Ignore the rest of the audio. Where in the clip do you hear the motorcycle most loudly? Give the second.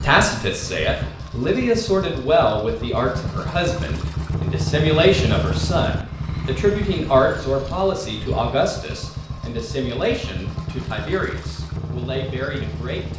5 s.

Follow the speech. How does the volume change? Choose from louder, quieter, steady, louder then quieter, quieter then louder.
quieter.